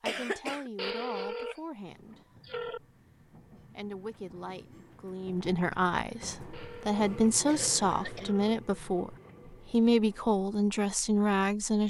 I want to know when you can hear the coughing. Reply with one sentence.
You can hear the coughing from 0.1 to 0.7 s and from 7.5 to 8.3 s.